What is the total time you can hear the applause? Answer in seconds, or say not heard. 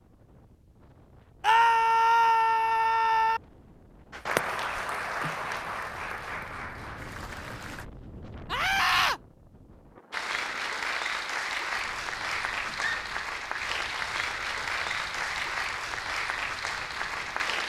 11 s.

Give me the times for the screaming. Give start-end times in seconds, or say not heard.
1.4-3.4, 8.5-9.2, 12.7-13.1.